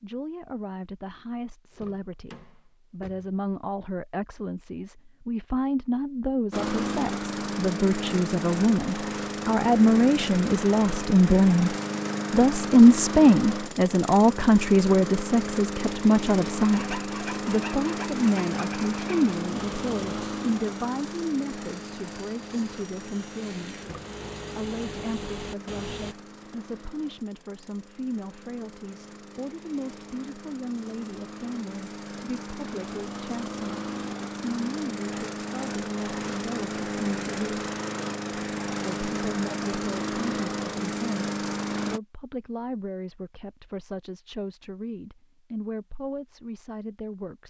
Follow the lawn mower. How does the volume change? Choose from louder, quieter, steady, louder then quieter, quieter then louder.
quieter then louder.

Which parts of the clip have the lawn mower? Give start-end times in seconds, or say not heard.
6.5-42.0.